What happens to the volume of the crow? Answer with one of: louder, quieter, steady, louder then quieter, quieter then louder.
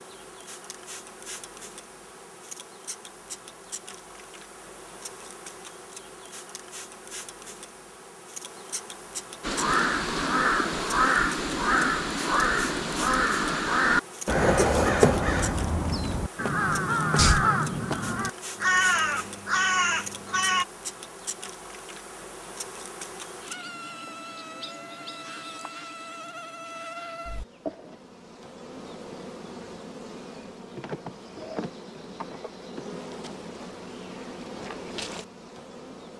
steady.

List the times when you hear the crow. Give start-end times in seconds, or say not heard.
9.4-20.6.